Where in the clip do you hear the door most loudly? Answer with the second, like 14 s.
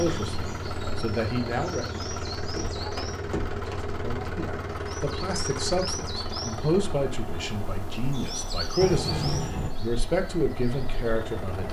9 s.